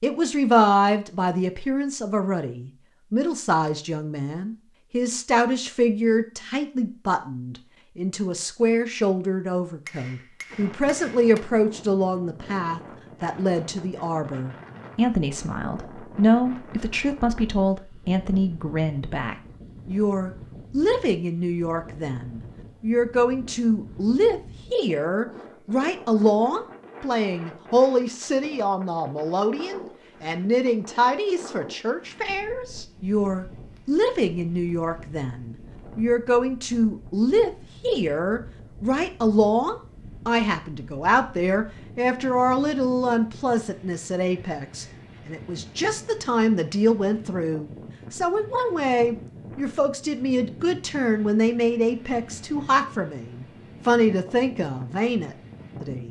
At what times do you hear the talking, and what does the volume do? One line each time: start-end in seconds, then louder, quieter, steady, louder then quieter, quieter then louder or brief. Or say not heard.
0.0-56.0 steady.